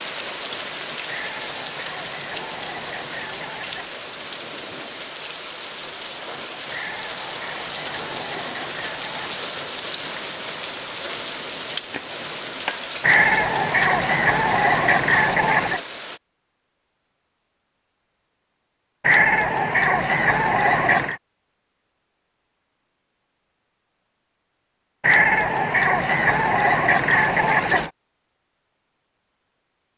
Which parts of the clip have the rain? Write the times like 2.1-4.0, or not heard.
0.0-16.2.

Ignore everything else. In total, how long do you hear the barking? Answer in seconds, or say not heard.
not heard.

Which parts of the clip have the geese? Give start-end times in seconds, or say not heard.
1.1-4.0, 6.7-9.4, 13.0-15.8, 19.0-21.2, 25.0-27.9.